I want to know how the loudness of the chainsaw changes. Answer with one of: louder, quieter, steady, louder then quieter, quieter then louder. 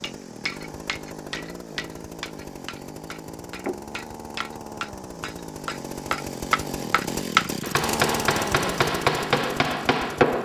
louder.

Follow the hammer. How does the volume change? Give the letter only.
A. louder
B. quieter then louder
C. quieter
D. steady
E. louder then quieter
A.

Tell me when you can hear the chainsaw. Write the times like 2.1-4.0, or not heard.
0.0-10.4.